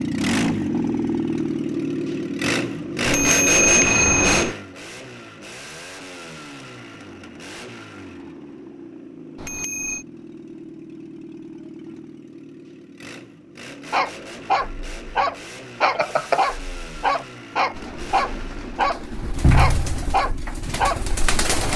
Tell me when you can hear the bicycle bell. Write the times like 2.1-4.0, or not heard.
3.0-4.5, 9.3-10.1, 15.8-16.4.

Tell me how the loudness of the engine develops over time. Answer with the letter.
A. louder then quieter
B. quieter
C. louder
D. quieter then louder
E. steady
B.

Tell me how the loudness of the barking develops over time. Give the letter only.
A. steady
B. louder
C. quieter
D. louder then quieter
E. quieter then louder
A.